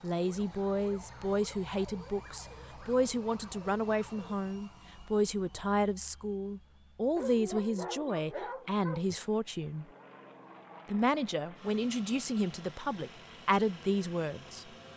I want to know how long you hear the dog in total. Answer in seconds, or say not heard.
2 s.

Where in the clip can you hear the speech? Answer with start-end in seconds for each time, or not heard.
0.0-9.8, 10.8-14.7.